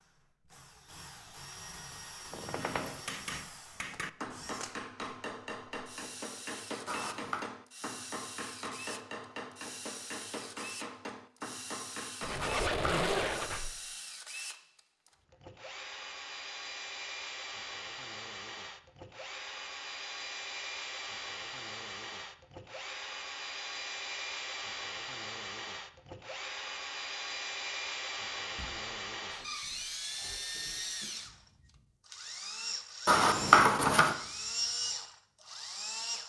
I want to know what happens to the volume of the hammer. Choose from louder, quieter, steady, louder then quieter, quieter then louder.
steady.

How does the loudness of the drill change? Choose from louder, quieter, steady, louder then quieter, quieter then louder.
louder.